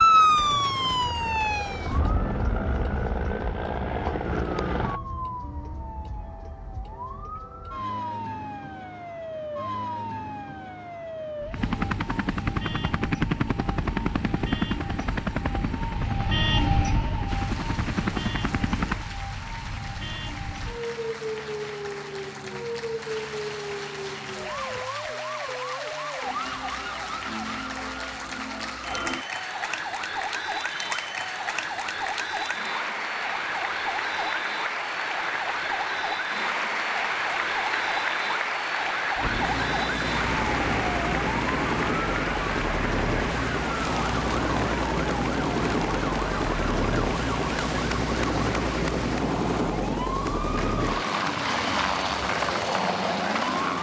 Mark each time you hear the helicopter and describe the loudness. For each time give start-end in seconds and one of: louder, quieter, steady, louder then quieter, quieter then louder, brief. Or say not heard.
0.0-5.0 louder
11.5-19.1 quieter then louder
39.1-53.7 steady.